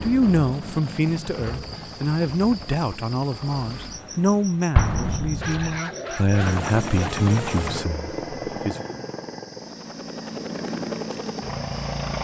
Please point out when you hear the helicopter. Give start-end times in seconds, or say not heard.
0.0-4.5, 6.3-12.1.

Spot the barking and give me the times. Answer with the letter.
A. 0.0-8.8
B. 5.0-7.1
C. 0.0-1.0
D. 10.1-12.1
B.